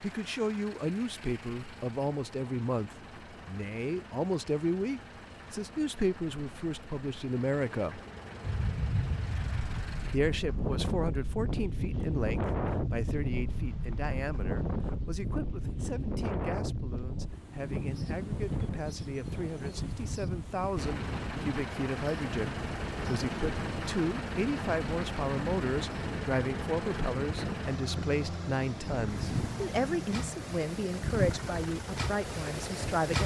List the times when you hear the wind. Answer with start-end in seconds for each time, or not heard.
8.4-33.2.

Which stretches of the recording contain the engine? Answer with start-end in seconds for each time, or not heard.
0.0-10.2, 20.8-33.0.